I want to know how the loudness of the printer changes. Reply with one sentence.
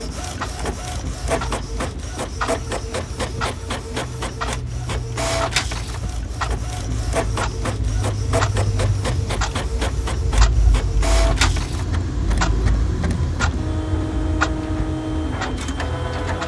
The loudness of the printer stays about the same.